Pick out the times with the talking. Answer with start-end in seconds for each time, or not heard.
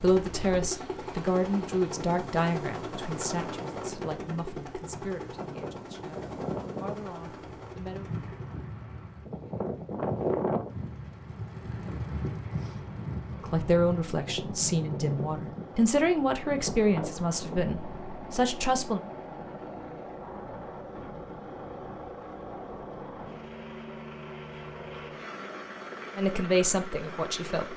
0.0-8.1, 13.5-19.0, 26.1-27.7.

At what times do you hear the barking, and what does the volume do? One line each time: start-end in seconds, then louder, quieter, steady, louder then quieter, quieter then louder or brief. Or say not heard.
not heard.